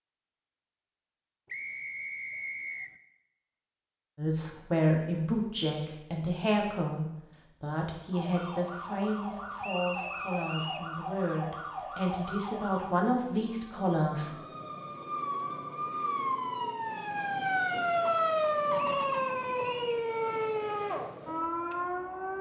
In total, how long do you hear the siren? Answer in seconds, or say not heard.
14 s.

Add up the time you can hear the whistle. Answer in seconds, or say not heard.
4 s.